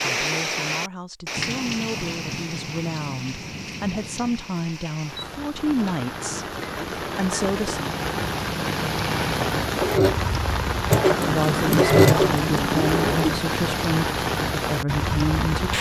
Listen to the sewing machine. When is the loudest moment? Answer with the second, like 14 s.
12 s.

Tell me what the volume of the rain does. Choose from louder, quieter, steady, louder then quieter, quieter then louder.
quieter then louder.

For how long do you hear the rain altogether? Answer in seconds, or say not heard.
16 s.